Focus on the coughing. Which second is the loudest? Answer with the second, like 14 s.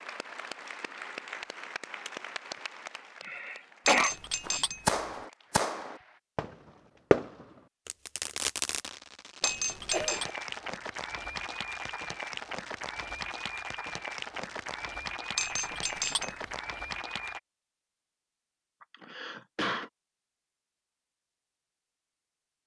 4 s.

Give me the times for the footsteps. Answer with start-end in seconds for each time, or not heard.
not heard.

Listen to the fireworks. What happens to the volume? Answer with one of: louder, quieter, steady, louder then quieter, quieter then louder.
quieter.